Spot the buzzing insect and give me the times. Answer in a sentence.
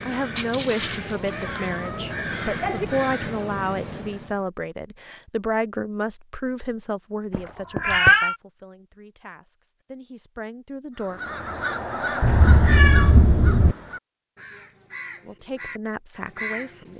The buzzing insect can't be heard in this clip.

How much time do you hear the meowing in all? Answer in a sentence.
The meowing can be heard for 4 seconds in total.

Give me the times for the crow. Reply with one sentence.
The crow can be heard from 0.0 to 4.4 s and from 11.0 to 16.9 s.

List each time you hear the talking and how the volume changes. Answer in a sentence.
You can hear the talking from 0.0 to 11.2 s, getting quieter; and briefly from 15.2 to 16.9 s.